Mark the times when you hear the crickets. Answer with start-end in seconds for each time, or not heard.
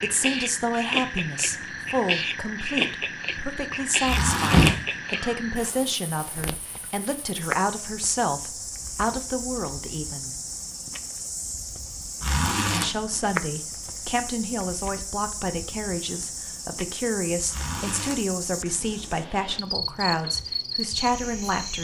0.0-21.7.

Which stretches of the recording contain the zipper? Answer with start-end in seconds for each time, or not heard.
4.0-4.8, 12.2-12.9, 17.5-18.2.